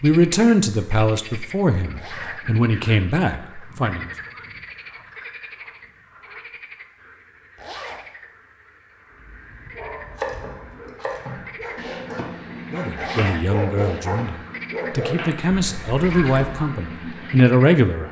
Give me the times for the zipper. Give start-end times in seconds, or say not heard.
1.9-2.5, 7.5-8.1, 12.9-13.4.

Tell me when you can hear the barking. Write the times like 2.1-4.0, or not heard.
9.1-16.7.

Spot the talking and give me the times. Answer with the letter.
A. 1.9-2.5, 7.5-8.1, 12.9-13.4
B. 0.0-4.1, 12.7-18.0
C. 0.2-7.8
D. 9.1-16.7
B.